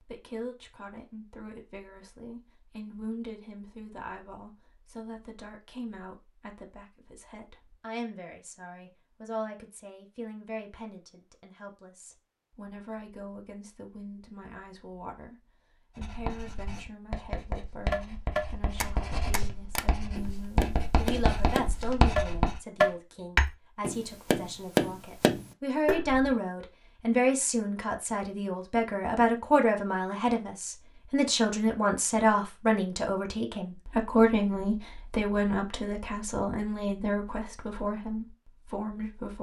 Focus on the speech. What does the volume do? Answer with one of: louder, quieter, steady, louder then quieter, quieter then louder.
louder.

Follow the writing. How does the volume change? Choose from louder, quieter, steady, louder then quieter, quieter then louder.
louder.